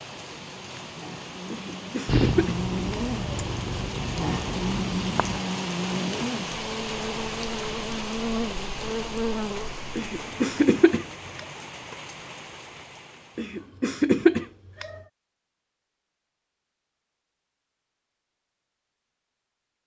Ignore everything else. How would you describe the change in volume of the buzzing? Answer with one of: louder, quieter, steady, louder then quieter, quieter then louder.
louder.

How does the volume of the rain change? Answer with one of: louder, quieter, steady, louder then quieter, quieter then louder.
louder then quieter.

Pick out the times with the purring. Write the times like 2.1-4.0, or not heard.
2.0-5.5.